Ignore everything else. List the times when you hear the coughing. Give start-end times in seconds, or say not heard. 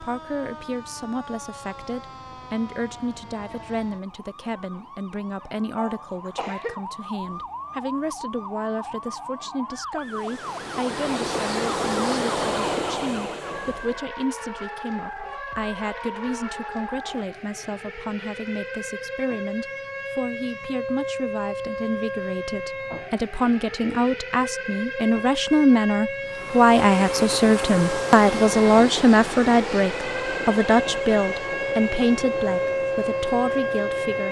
5.8-6.8.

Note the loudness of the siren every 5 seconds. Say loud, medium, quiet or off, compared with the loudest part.
quiet, medium, medium, medium, medium, loud, loud.